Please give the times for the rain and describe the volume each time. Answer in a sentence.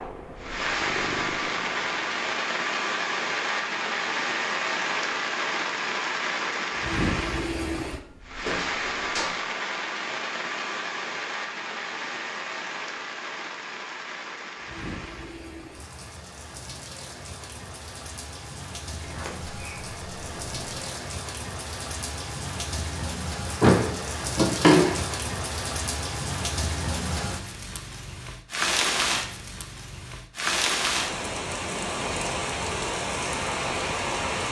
You can hear the rain from 0.0 to 34.4 s, getting quieter then louder.